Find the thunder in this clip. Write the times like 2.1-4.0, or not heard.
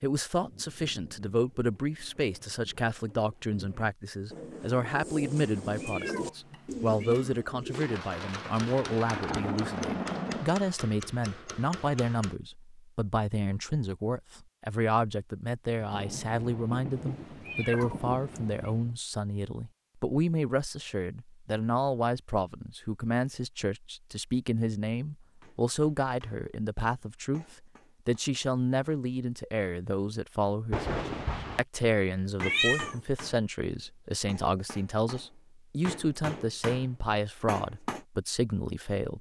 7.7-10.6, 15.8-18.9, 30.7-31.6.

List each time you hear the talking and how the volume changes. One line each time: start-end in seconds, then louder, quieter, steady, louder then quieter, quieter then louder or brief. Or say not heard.
0.0-39.1 steady.